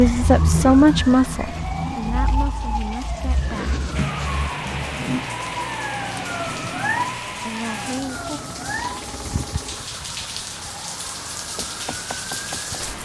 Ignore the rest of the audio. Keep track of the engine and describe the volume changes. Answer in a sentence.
The loudness of the engine goes down.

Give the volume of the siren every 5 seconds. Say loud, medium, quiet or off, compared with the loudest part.
loud, loud, medium.